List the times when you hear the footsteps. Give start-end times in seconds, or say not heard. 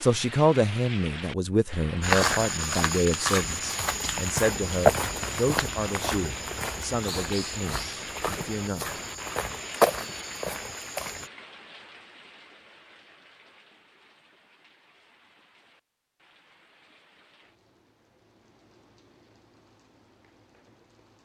2.0-11.3.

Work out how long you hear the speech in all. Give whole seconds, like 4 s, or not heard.
9 s.